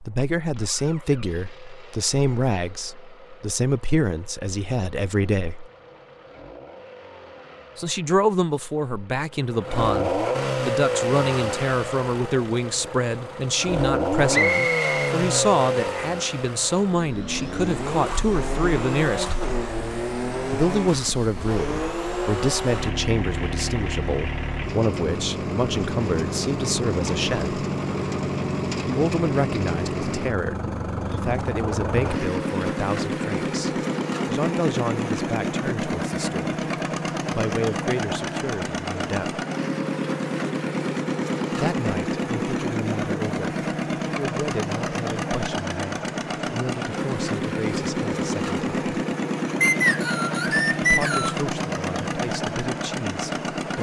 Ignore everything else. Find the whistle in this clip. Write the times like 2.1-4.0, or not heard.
14.3-15.2, 49.6-51.4.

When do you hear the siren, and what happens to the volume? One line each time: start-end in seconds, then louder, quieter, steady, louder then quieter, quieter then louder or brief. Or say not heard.
not heard.